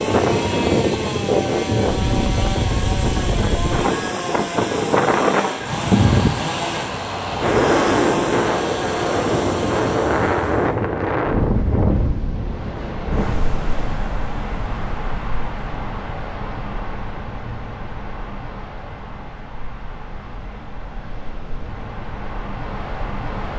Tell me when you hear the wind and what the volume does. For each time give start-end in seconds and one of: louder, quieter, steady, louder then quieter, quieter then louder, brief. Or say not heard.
0.0-23.5 quieter.